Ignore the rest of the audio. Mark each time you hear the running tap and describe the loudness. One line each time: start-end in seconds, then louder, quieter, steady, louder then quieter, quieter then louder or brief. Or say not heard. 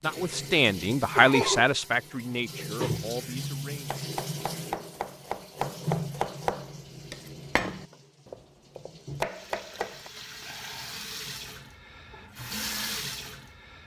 0.0-13.8 quieter then louder.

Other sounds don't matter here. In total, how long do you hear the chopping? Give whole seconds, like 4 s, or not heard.
6 s.